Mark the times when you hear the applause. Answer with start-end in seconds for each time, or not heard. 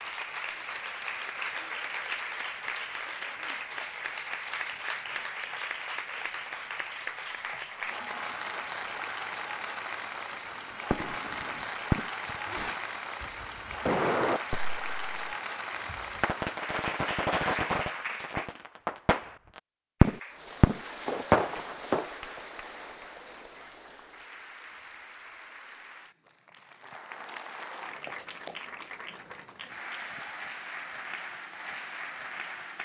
0.0-18.5, 20.0-32.7.